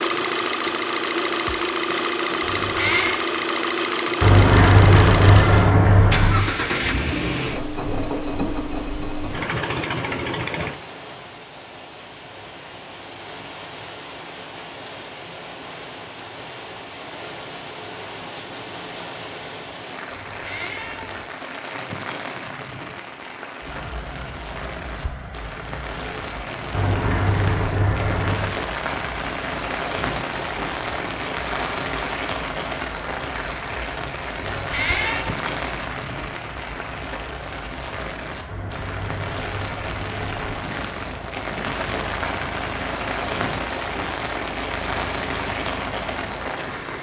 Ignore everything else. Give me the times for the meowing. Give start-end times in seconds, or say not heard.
2.4-3.1, 20.1-21.2, 34.4-35.4.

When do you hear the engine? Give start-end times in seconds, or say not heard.
0.0-10.8, 23.6-46.9.